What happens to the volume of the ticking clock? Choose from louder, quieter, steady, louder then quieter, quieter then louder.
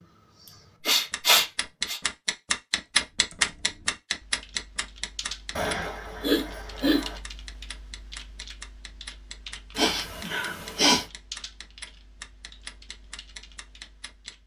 louder then quieter.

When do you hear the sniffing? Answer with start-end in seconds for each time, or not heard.
0.8-2.0, 5.5-7.2, 9.8-11.1.